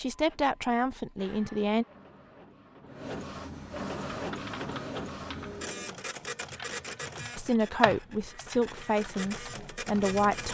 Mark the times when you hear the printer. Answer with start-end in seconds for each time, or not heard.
0.0-10.4.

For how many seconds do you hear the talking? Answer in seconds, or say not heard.
5 s.